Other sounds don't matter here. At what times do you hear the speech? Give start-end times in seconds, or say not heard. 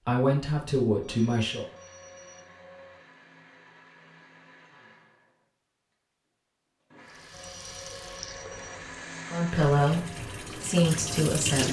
0.1-1.6, 9.3-11.6.